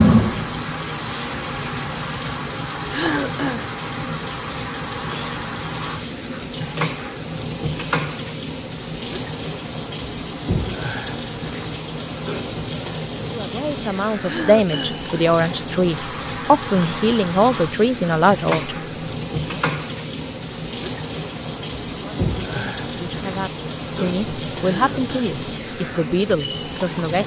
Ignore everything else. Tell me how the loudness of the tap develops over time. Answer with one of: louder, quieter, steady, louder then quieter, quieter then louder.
steady.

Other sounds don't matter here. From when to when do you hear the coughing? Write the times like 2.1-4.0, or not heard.
2.9-3.7, 14.2-15.1, 24.6-25.4.